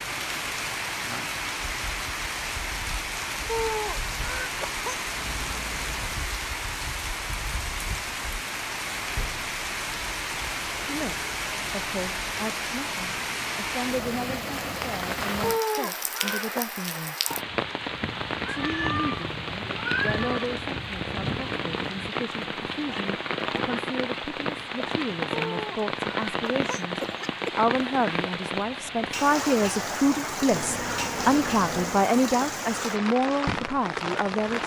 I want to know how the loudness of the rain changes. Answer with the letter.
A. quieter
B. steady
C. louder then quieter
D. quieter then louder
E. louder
B.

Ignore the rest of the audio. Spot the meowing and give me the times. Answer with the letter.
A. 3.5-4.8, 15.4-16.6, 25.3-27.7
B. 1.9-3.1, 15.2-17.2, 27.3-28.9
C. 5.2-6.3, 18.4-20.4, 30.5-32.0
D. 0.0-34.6
C.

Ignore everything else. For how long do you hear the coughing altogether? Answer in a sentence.
You can hear the coughing for 5 seconds altogether.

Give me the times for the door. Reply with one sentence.
You can't hear the door here.